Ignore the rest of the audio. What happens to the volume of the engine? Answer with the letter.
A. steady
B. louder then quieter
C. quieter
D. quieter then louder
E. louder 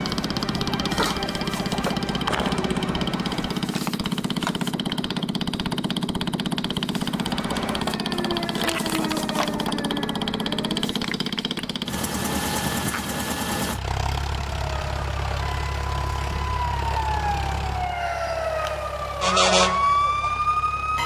C.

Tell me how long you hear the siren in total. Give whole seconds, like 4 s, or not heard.
14 s.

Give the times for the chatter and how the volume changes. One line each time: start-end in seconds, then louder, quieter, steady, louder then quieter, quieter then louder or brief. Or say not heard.
not heard.